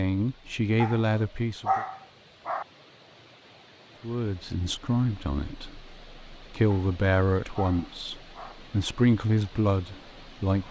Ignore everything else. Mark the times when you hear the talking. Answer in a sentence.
You can hear the talking from 0.0 to 1.9 s and from 4.0 to 10.6 s.